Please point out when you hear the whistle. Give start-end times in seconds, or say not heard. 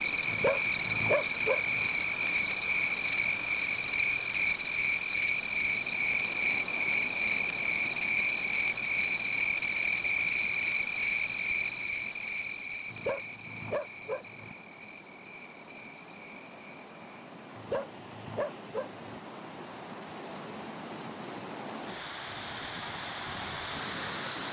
not heard.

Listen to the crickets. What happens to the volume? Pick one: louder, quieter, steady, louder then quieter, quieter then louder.
quieter.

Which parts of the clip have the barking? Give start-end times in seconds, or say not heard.
0.2-1.9, 12.9-14.6, 17.6-19.2.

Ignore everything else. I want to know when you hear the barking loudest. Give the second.
1 s.